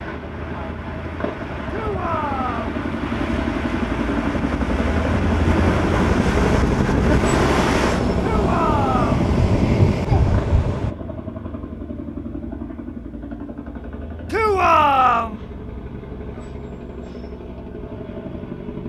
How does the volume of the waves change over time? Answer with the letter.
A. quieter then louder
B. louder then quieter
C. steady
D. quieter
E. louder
E.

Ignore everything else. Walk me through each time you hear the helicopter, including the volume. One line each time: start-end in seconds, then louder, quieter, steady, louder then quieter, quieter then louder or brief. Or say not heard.
0.0-18.8 louder then quieter.